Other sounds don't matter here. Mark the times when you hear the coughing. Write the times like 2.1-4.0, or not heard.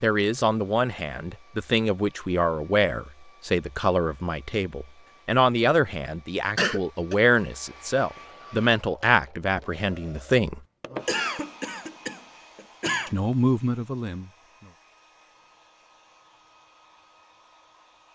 6.5-7.2, 11.1-13.2.